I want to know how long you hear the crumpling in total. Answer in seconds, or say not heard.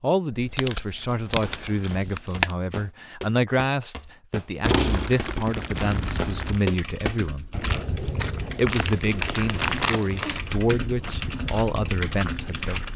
6 s.